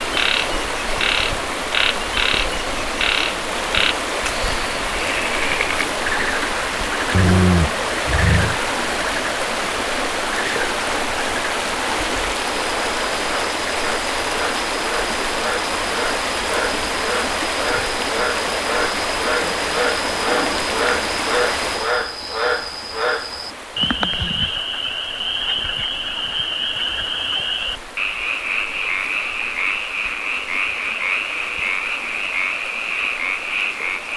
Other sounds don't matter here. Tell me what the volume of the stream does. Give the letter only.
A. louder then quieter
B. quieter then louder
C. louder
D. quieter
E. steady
D.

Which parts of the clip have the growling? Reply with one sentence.
The growling can be heard from 7.1 to 8.6 s and from 20.2 to 20.6 s.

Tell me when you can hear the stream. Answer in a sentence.
The stream can be heard from 0.0 to 34.1 s.